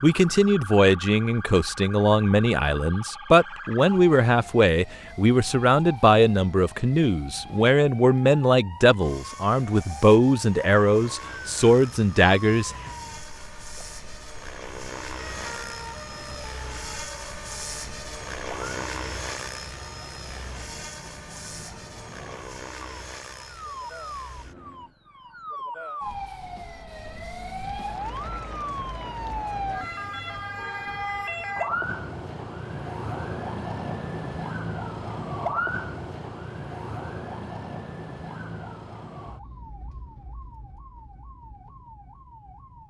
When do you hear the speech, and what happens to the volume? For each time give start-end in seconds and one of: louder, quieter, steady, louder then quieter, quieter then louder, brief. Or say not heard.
0.0-12.7 steady.